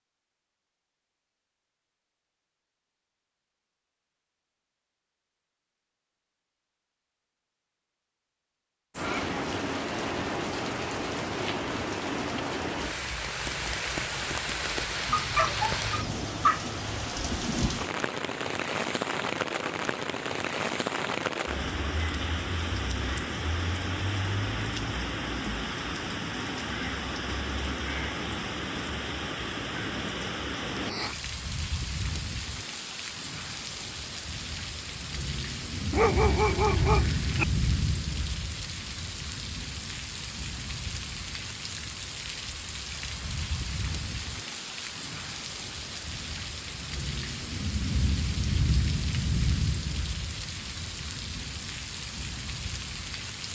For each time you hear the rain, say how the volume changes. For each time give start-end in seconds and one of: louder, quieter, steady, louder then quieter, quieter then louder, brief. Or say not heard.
8.9-53.5 steady.